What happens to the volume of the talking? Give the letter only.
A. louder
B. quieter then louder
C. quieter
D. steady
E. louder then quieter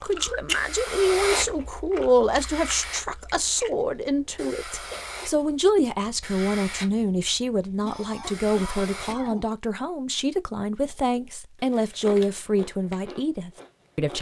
D.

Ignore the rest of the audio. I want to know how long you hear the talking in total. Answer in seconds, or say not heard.
14 s.